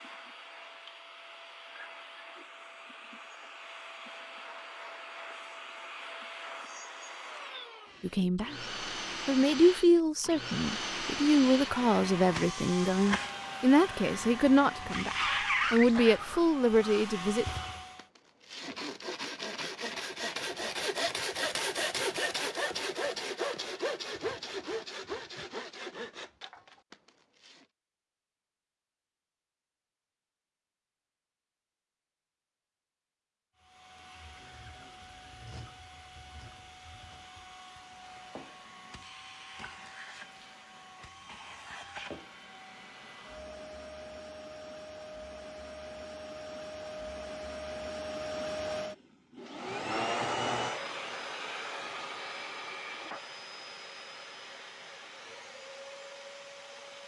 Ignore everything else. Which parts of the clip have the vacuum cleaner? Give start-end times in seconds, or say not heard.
0.0-18.1, 33.5-57.0.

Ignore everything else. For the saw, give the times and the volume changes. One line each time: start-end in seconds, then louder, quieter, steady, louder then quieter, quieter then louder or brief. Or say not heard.
15.4-27.6 louder then quieter.